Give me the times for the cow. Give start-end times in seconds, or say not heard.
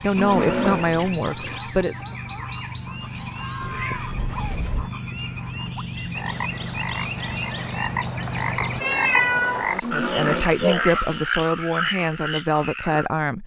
0.1-1.6, 9.8-11.2.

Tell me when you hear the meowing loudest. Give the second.
9 s.